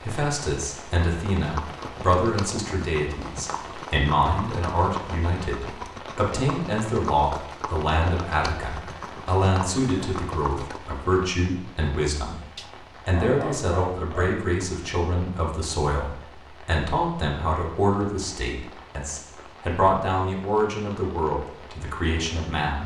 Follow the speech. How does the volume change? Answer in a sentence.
The volume of the speech stays about the same.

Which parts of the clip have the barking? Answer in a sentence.
You can hear the barking from 12.6 to 14.4 s.